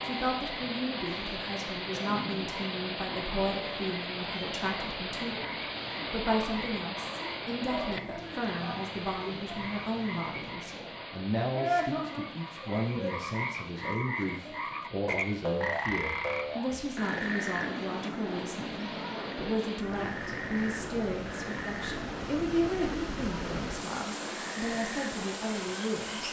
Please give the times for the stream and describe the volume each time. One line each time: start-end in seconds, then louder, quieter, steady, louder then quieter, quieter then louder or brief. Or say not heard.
0.0-26.2 quieter then louder.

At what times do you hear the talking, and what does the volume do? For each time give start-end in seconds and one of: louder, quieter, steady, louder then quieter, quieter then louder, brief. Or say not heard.
0.0-26.2 steady.